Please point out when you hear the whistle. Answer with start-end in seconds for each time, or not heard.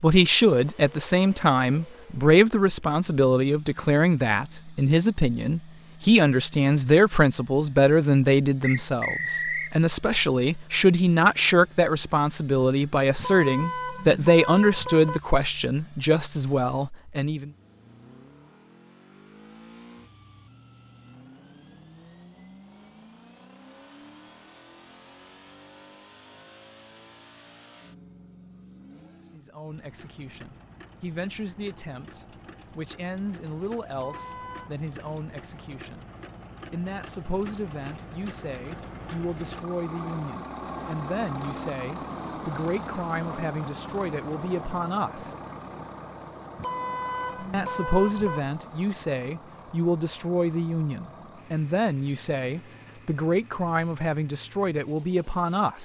8.6-9.8.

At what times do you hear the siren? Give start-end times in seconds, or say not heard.
not heard.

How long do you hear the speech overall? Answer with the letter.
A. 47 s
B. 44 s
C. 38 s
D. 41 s
D.